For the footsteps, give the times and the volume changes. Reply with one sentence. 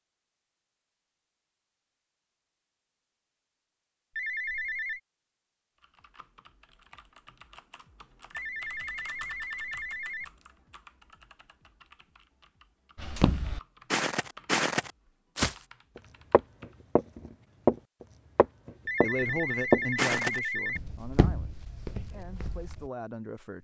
You can hear the footsteps briefly from 12.9 to 15.6 s; briefly from 16.3 to 17.8 s; and from 18.4 to 22.9 s, getting louder then quieter.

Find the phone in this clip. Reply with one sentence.
You can hear the phone from 4.2 to 5.0 s, from 8.3 to 10.3 s and from 18.9 to 20.8 s.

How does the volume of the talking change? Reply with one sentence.
The volume of the talking goes down, then up.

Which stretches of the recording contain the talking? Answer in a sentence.
You can hear the talking from 19.0 to 23.5 s.